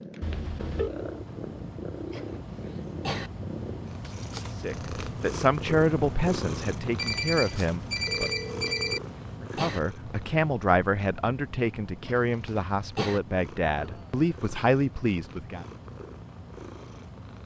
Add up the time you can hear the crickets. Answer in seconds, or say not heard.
not heard.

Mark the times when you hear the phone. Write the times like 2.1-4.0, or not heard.
0.2-0.9, 7.0-9.0, 13.8-14.2.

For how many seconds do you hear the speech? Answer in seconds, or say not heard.
10 s.